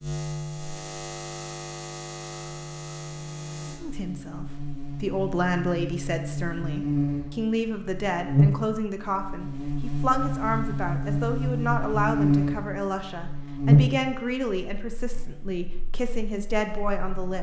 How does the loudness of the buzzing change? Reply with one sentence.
The loudness of the buzzing goes up.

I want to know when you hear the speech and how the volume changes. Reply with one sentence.
You can hear the speech from 3.8 to 17.3 s, at a steady volume.